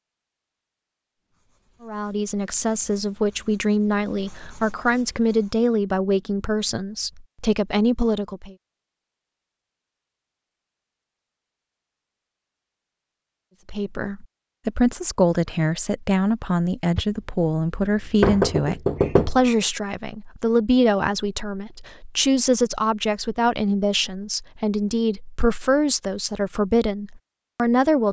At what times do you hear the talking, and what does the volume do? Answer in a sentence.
The talking can be heard from 1.8 to 8.6 s, at a steady volume; and from 13.7 to 28.0 s, at a steady volume.